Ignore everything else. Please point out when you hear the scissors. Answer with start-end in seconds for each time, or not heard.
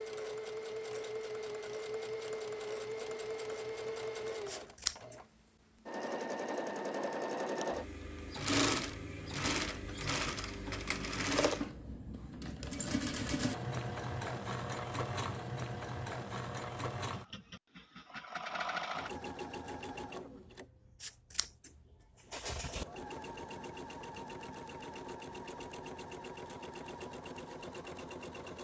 4.5-5.2, 21.0-21.7, 22.3-22.9.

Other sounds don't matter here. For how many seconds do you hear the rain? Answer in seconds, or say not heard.
not heard.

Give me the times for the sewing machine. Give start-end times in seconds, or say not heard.
0.0-28.6.